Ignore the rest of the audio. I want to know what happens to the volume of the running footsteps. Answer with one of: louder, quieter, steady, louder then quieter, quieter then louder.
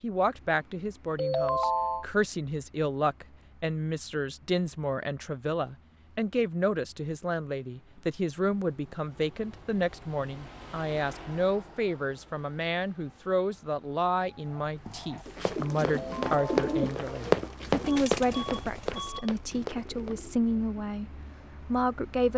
louder then quieter.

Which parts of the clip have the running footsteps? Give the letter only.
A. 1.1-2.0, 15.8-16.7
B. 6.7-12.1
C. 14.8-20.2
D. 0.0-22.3
C.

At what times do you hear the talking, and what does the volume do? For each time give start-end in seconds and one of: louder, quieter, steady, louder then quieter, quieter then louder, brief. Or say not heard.
0.0-22.3 steady.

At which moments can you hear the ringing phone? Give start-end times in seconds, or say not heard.
1.1-2.0, 15.8-16.7.